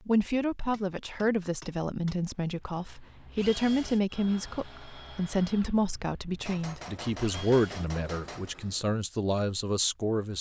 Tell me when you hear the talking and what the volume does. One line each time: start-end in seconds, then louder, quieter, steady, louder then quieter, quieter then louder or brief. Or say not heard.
0.1-10.3 steady.